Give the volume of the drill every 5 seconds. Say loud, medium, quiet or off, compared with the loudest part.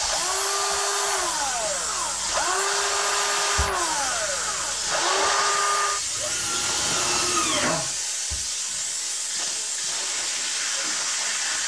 loud, loud, off.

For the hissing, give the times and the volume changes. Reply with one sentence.
You can hear the hissing from 0.0 to 11.6 s, at a steady volume.